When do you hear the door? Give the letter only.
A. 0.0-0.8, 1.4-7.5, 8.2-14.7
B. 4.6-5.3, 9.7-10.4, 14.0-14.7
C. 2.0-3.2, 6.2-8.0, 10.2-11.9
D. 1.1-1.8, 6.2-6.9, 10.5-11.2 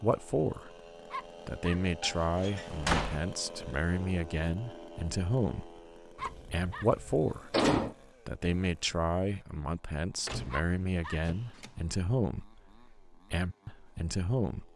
C.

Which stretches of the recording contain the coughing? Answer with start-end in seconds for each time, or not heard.
not heard.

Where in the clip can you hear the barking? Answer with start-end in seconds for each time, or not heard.
1.1-1.8, 6.2-6.9, 10.5-11.2.